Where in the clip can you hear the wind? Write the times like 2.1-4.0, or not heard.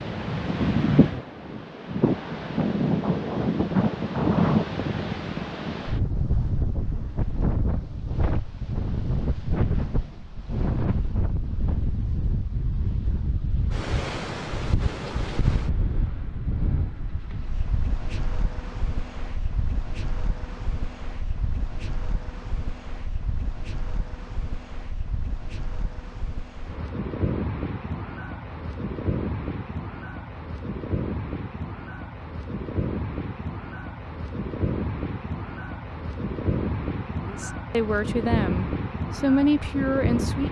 0.0-40.4.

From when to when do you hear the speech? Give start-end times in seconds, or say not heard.
37.2-40.4.